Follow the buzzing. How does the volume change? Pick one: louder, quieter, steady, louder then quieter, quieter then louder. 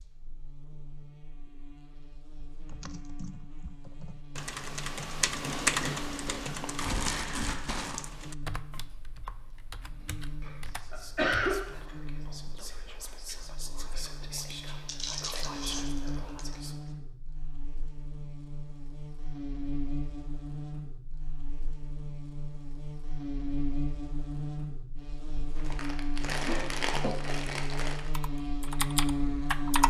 louder.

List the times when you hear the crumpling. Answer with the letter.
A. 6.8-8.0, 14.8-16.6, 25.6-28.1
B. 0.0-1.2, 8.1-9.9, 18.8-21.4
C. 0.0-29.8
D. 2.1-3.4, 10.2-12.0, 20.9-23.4
A.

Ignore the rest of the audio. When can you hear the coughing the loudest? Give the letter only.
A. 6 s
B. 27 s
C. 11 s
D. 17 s
C.